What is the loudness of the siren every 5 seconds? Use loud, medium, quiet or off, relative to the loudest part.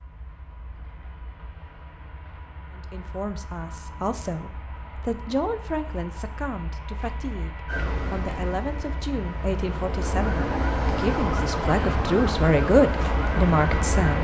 off, medium, loud.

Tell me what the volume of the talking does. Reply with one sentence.
The volume of the talking goes up.